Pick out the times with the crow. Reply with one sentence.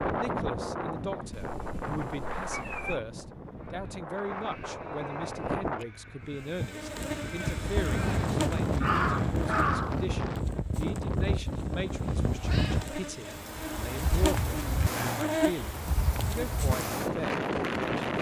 The crow can be heard from 3.5 to 10.1 s.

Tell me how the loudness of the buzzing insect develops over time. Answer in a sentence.
The loudness of the buzzing insect goes down, then up.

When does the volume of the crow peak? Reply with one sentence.
The loudest moment of the crow is at 9 seconds.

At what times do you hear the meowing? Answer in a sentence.
You can hear the meowing from 1.3 to 3.0 s and from 12.2 to 12.9 s.